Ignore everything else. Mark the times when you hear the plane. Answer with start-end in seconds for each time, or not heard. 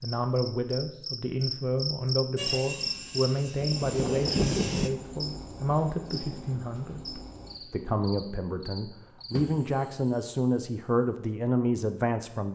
2.4-4.9.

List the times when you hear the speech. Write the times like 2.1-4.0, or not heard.
0.0-12.5.